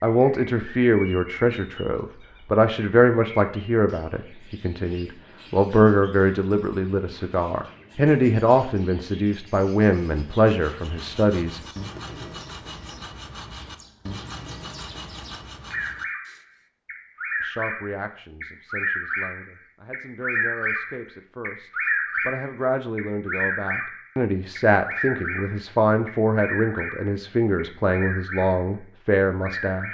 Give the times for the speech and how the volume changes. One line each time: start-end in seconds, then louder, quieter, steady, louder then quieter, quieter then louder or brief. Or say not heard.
0.0-11.6 steady
17.4-29.8 louder.